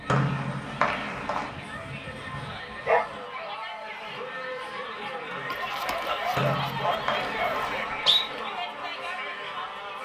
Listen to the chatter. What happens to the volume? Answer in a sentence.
The volume of the chatter goes up.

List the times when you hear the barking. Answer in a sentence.
You can hear the barking from 1.5 to 3.0 s and from 5.5 to 7.8 s.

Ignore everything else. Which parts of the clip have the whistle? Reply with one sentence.
The whistle can be heard from 0.1 to 1.6 s and from 6.3 to 8.2 s.